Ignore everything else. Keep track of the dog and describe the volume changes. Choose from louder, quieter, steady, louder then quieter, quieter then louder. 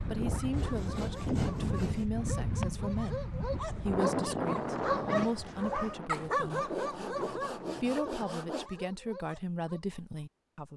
louder then quieter.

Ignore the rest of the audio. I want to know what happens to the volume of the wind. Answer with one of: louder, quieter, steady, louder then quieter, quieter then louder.
quieter.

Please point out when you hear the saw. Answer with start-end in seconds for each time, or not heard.
0.5-2.1, 6.5-8.7.